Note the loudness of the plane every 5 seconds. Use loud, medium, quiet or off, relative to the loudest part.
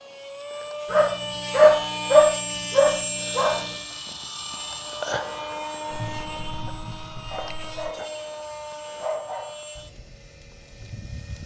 loud, loud, quiet.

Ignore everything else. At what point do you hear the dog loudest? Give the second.
2 s.